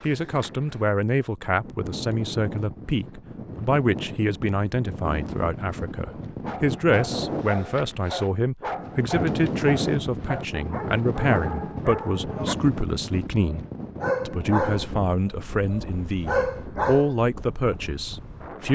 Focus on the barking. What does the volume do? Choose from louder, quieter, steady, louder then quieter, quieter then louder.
louder.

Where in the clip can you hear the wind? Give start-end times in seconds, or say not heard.
0.0-18.7.